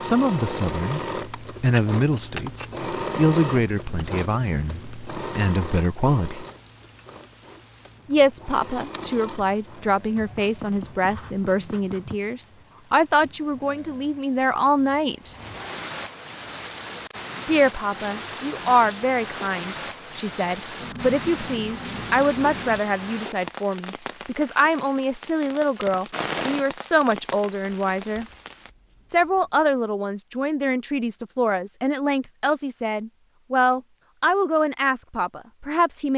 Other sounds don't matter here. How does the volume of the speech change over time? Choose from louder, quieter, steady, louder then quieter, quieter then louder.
steady.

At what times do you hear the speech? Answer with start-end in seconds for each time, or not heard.
0.0-6.5, 8.1-15.3, 17.4-28.2, 29.1-36.1.